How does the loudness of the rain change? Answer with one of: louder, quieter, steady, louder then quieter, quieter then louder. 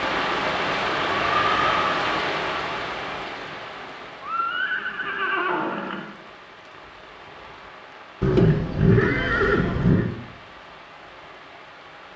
quieter.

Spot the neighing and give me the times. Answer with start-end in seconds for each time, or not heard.
1.2-1.9, 4.2-6.1, 8.2-10.1.